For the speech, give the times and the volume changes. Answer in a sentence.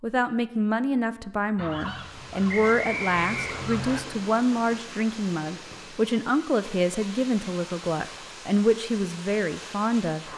The speech can be heard from 0.0 to 10.2 s, at a steady volume.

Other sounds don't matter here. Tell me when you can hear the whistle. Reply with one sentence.
You can hear the whistle from 2.5 to 4.0 s.